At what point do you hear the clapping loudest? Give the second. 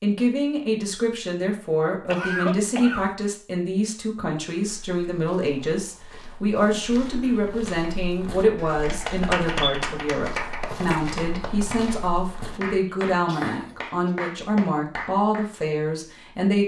9 s.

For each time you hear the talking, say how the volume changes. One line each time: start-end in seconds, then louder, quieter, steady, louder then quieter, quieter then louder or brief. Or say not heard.
0.0-16.6 steady.